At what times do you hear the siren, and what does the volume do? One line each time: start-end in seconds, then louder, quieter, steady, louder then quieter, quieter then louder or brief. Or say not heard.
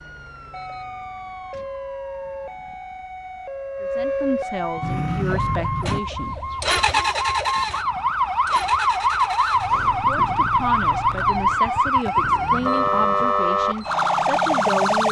0.0-15.0 louder.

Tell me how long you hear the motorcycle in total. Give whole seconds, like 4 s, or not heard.
8 s.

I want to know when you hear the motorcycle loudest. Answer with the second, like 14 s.
7 s.